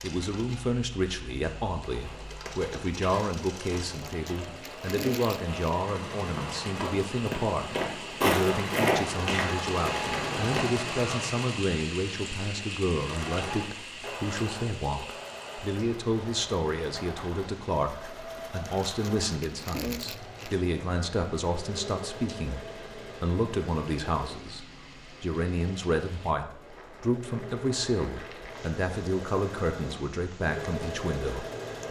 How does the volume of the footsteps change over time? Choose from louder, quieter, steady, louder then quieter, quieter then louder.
louder.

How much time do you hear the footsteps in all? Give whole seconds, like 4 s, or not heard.
9 s.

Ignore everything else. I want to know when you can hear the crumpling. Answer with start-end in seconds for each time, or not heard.
3.9-5.8, 18.6-20.6.